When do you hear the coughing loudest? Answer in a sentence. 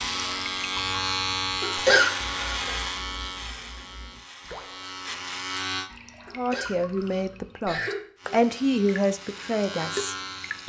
The volume of the coughing peaks at 2 seconds.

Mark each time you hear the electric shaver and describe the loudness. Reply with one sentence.
The electric shaver can be heard from 0.0 to 5.9 s, getting quieter then louder; and briefly from 8.2 to 10.6 s.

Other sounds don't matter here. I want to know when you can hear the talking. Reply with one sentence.
You can hear the talking from 6.3 to 10.6 s.